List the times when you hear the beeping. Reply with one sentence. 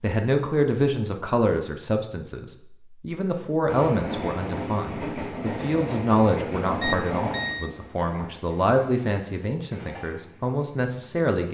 You can hear the beeping from 6.6 to 7.7 s.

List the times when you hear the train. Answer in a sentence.
You can hear the train from 3.6 to 11.2 s.